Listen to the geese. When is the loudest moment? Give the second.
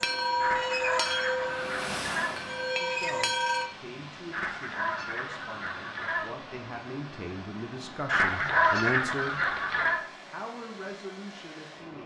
9 s.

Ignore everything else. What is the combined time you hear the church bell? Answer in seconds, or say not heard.
4 s.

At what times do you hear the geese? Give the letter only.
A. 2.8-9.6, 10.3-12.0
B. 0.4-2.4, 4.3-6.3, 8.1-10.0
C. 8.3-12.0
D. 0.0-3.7
B.